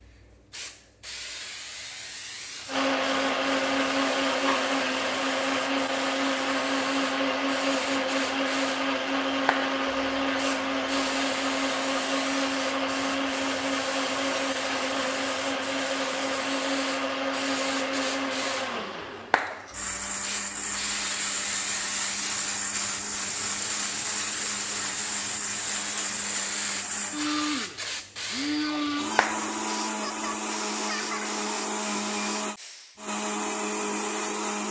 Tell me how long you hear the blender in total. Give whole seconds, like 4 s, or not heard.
32 s.